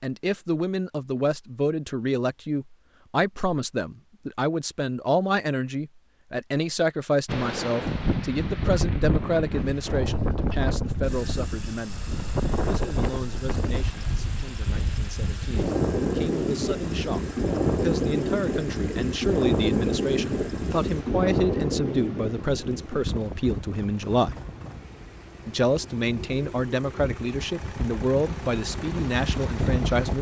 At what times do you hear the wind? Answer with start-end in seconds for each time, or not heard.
7.2-30.1.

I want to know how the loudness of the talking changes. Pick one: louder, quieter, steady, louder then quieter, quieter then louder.
quieter then louder.